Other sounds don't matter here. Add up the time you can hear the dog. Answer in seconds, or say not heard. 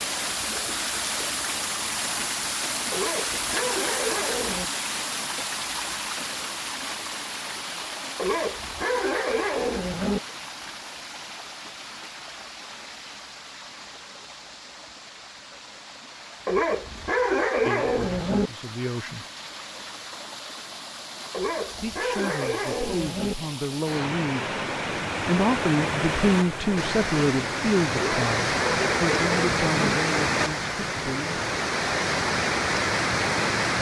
10 s.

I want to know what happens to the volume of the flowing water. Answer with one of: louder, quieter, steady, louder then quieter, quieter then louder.
quieter then louder.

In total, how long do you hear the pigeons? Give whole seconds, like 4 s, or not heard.
not heard.